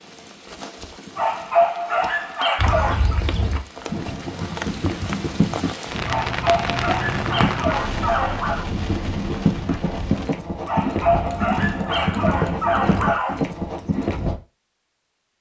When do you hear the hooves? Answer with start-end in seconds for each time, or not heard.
2.5-14.3.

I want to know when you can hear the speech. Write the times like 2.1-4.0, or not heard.
not heard.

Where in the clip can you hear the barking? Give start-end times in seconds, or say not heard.
1.1-3.2, 6.0-8.7, 10.7-13.4.